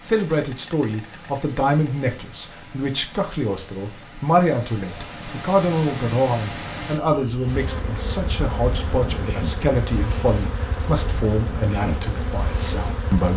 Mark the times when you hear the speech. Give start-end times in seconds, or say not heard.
0.0-13.3.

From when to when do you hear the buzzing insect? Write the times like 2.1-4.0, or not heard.
0.2-13.3.